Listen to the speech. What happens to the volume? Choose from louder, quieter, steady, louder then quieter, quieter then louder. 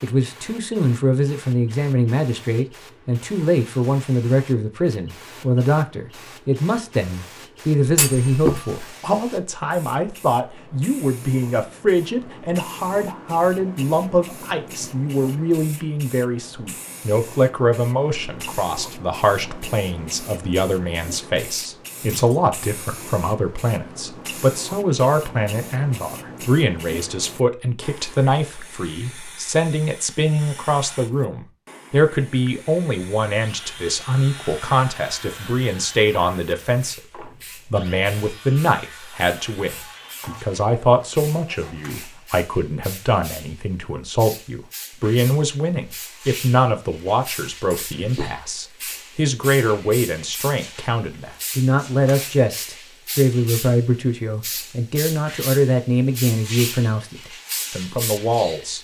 steady.